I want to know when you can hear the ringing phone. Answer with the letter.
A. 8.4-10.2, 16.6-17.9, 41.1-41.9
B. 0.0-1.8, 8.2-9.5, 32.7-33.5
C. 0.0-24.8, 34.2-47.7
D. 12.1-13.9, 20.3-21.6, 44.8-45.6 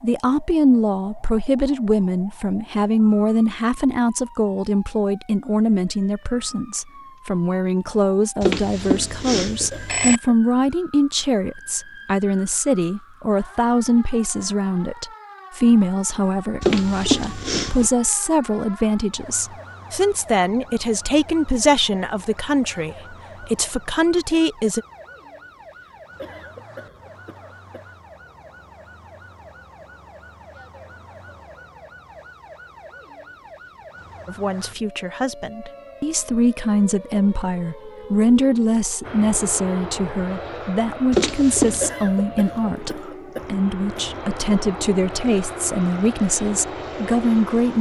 A.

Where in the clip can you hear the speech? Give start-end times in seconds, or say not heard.
0.0-24.8, 34.2-47.7.